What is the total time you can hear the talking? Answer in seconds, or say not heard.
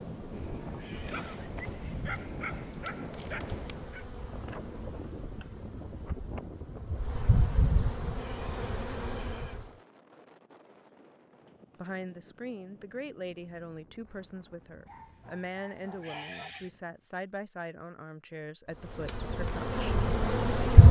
8 s.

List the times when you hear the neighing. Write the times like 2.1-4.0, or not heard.
0.8-1.5, 8.1-9.7, 16.0-16.7.